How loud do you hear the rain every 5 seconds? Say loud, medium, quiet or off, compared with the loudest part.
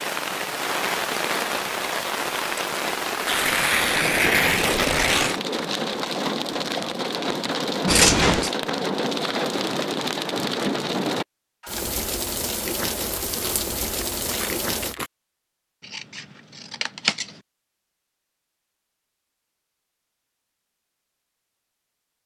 loud, loud, loud, off, off.